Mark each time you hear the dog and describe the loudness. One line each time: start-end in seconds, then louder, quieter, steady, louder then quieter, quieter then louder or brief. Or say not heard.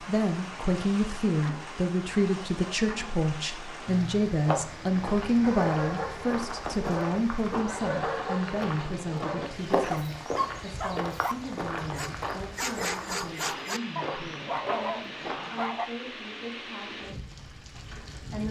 5.4-15.9 steady.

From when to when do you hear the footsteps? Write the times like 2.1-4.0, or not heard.
4.3-15.8.